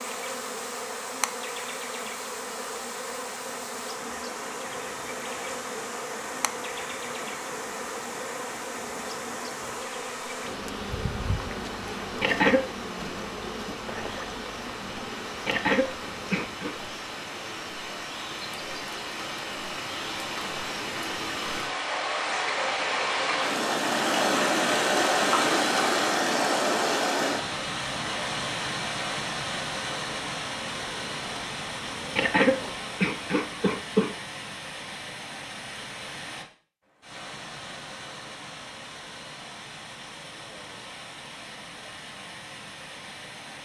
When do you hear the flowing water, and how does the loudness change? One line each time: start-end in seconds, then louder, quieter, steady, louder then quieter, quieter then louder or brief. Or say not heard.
0.0-43.5 louder then quieter.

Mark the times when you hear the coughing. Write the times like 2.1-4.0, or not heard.
12.2-12.7, 15.4-16.8, 32.1-34.1.